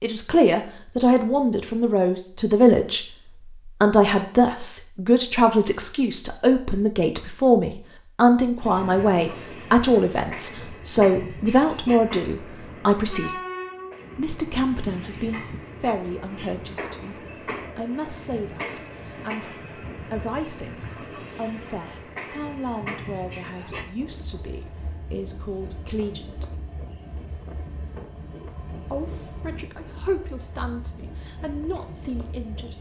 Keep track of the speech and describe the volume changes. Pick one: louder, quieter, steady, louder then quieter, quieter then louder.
quieter.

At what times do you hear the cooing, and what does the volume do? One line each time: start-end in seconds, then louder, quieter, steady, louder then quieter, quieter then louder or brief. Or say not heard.
not heard.